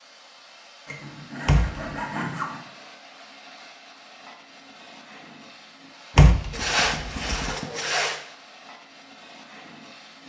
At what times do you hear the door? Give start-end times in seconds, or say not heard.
1.4-1.9, 6.2-7.5.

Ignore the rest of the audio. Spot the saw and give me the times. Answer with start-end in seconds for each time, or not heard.
0.8-2.6, 6.5-8.2.